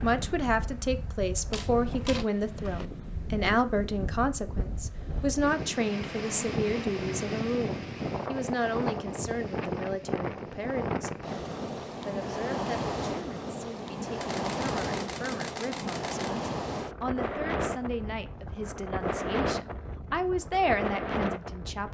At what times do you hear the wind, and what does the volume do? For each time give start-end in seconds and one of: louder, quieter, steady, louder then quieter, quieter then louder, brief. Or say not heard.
0.0-21.8 louder.